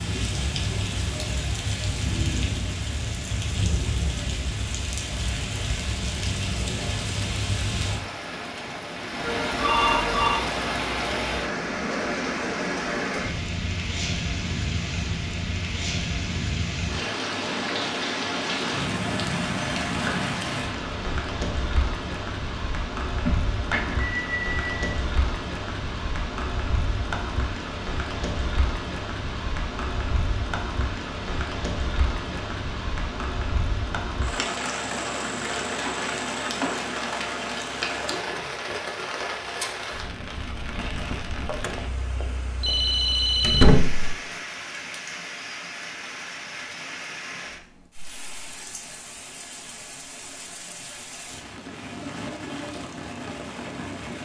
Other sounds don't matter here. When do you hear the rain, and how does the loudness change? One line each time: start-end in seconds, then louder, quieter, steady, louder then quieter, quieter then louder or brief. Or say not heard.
0.0-54.2 quieter.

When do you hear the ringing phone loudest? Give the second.
44 s.